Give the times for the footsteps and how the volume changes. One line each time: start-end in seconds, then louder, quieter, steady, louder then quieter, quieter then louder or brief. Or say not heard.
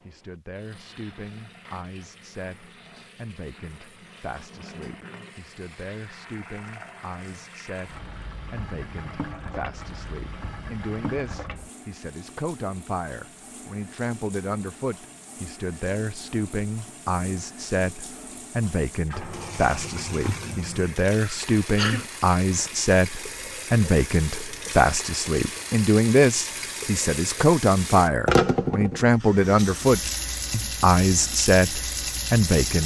not heard.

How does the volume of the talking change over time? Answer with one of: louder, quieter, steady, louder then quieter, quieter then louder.
louder.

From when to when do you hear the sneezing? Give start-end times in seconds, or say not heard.
21.2-22.1.